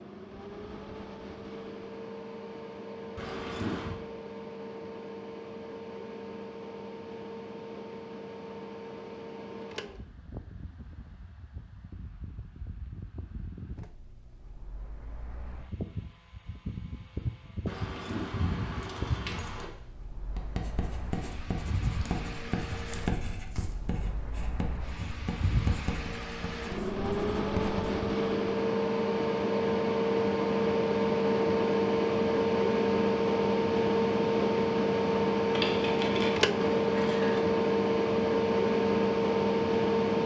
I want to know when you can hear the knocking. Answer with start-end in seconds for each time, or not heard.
not heard.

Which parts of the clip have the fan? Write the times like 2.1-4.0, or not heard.
0.0-40.2.